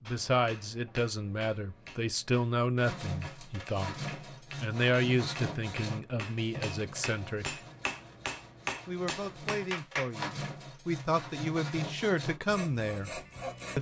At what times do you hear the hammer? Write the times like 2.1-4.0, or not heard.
0.1-10.3.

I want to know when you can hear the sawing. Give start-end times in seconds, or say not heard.
2.8-13.7.